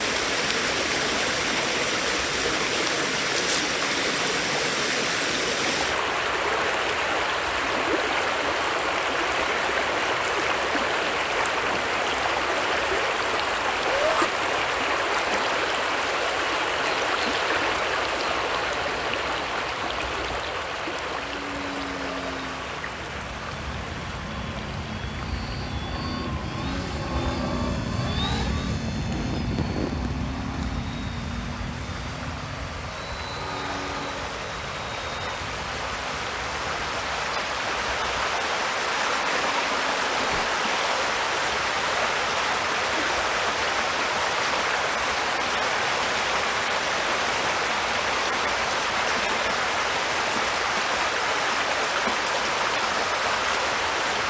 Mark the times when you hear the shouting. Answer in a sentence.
You can hear the shouting from 13.8 to 14.3 s.